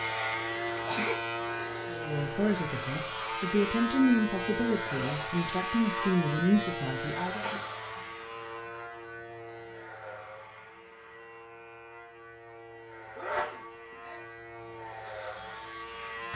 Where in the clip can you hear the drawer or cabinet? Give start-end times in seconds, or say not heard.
not heard.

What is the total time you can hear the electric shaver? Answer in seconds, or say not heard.
16 s.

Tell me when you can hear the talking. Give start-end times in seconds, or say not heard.
1.9-7.5.